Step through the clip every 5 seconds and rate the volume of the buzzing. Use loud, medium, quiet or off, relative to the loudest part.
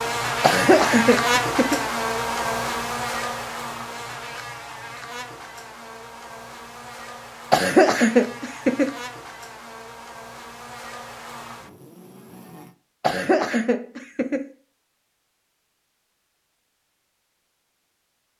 loud, quiet, quiet, off.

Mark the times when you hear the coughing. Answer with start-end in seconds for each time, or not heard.
0.4-1.8, 7.5-8.9, 13.0-14.4.